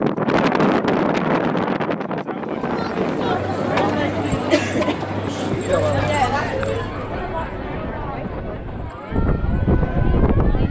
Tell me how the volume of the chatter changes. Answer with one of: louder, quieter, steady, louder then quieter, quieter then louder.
quieter.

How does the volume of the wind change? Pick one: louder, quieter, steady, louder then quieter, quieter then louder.
quieter then louder.